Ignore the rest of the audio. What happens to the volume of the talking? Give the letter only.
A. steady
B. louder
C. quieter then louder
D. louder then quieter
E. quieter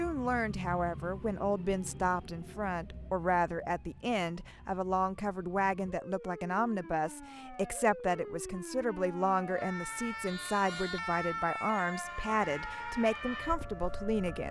A.